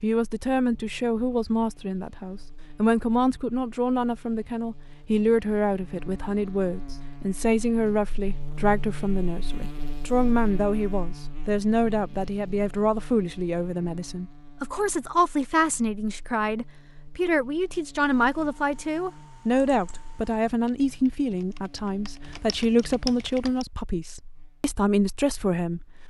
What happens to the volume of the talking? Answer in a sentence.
The loudness of the talking stays about the same.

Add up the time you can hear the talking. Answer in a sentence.
You can hear the talking for 26 seconds altogether.